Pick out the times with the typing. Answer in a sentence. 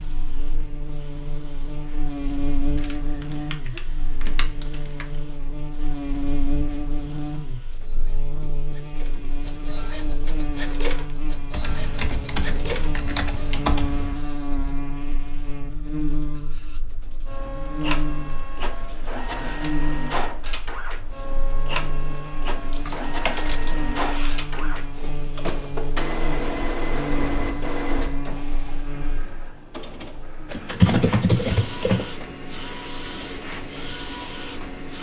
The typing can be heard from 2.8 to 5.0 s, from 11.5 to 14.2 s, from 22.7 to 24.6 s and from 30.4 to 32.0 s.